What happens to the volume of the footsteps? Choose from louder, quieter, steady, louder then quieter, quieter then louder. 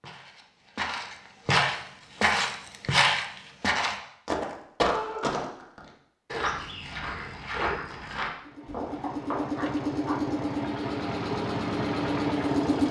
quieter.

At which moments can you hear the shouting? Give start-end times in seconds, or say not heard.
4.8-5.2.